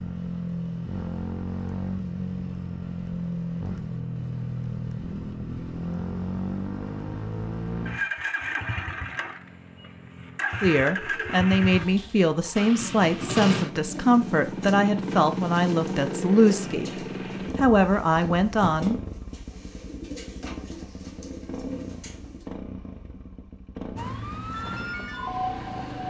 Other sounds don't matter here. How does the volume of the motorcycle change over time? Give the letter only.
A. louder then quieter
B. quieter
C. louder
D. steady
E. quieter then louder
B.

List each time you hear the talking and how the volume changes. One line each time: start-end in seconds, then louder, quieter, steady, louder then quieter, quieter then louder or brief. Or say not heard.
10.6-19.0 steady.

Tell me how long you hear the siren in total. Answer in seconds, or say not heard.
2 s.